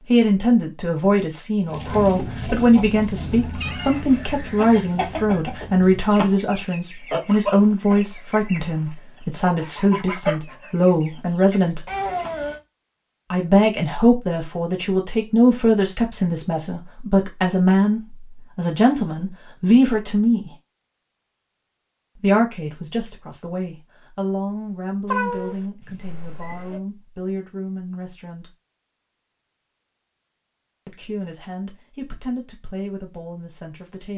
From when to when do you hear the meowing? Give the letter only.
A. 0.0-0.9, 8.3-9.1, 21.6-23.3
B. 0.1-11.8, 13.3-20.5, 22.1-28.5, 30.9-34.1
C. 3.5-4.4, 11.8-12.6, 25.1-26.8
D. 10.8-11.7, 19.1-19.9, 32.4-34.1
C.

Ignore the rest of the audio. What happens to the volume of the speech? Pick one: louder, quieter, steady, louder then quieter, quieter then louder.
quieter.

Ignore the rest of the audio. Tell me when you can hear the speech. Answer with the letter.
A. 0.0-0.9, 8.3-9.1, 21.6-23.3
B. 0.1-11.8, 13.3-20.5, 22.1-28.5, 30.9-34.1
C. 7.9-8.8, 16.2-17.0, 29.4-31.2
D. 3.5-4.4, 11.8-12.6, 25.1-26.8
B.